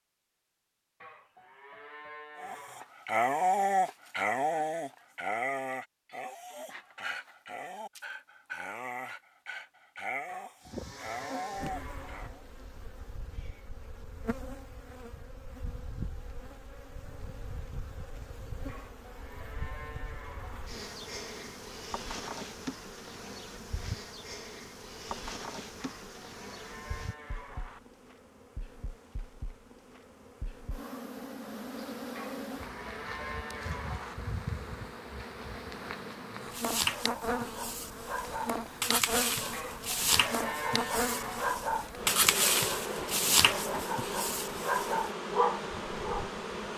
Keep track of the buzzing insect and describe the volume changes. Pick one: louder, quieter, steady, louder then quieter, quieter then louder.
louder.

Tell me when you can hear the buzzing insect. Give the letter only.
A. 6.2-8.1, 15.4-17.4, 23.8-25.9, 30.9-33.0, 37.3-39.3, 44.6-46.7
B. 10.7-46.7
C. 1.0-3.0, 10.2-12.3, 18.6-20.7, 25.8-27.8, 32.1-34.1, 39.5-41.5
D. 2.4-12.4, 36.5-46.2
B.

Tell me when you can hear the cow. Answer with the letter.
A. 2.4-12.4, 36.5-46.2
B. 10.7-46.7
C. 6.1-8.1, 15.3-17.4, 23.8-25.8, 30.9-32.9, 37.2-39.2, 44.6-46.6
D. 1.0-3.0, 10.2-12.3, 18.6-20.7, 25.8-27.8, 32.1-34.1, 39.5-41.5
D.